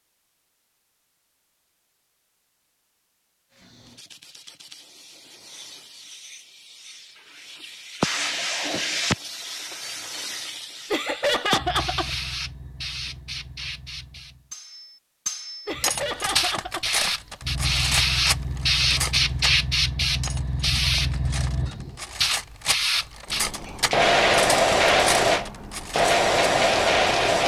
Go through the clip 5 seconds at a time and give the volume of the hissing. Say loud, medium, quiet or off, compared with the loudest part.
quiet, medium, quiet, loud, loud, loud.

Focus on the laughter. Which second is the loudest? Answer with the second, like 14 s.
11 s.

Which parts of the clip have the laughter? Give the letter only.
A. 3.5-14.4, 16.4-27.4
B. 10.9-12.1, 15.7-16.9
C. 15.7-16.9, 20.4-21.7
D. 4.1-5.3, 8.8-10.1
B.